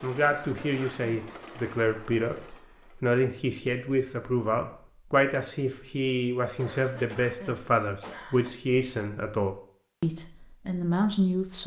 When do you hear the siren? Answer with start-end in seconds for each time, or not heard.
not heard.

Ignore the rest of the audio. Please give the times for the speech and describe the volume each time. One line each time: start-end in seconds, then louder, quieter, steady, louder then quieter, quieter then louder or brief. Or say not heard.
0.0-11.6 steady.